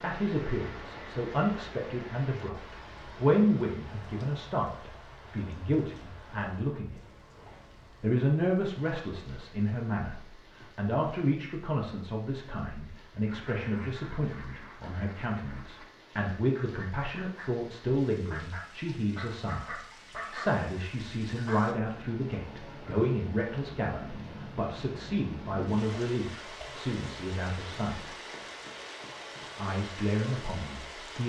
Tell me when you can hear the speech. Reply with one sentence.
You can hear the speech from 0.0 to 7.0 s, from 8.0 to 28.1 s and from 29.6 to 31.2 s.